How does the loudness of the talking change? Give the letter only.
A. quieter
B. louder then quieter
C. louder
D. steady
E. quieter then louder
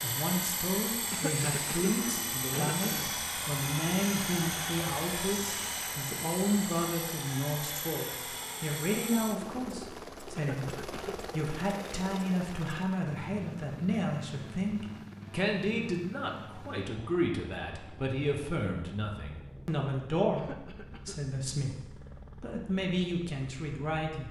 D.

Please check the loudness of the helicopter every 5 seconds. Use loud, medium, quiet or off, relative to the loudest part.
loud, loud, medium, quiet, quiet.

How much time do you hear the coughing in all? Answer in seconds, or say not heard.
4 s.